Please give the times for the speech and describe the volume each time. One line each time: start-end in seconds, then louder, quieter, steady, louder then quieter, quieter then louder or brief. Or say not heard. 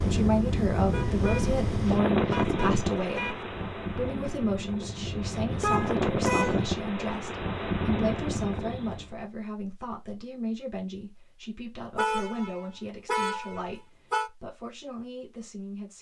0.0-15.9 quieter.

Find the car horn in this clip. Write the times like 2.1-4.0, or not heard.
0.9-3.5, 5.6-6.7, 11.9-14.3.